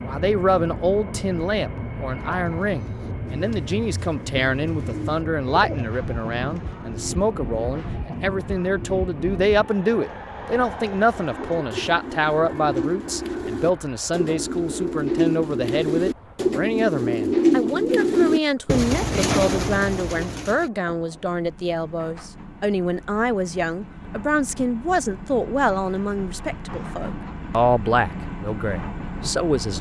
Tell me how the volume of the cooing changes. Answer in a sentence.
The loudness of the cooing goes up.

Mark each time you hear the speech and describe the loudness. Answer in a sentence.
The speech can be heard from 0.0 to 29.7 s, at a steady volume.